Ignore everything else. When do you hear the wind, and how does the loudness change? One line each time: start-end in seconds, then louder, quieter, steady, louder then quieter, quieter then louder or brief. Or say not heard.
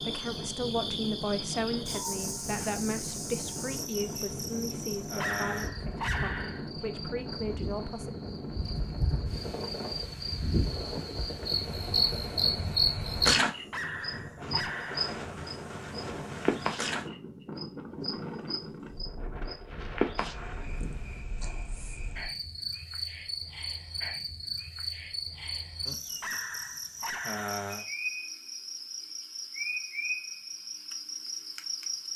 0.0-21.2 steady.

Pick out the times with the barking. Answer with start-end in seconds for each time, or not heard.
5.2-6.7, 13.7-15.2, 26.2-27.5.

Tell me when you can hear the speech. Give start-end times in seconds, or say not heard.
0.0-8.1.